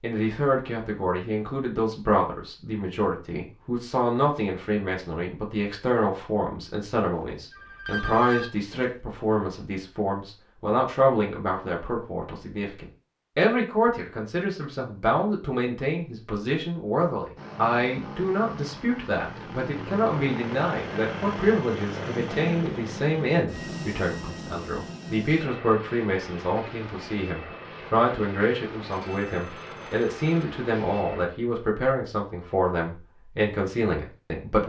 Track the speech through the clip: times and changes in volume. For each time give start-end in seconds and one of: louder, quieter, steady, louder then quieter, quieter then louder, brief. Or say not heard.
0.0-34.6 steady.